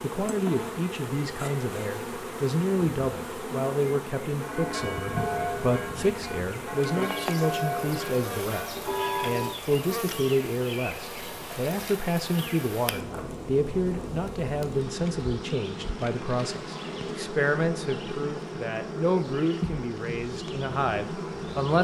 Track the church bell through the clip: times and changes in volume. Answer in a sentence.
You can hear the church bell from 4.4 to 9.6 s, getting quieter then louder.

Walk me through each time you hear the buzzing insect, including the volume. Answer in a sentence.
You can hear the buzzing insect from 0.0 to 21.7 s, at a steady volume.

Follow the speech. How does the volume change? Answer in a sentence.
The volume of the speech stays about the same.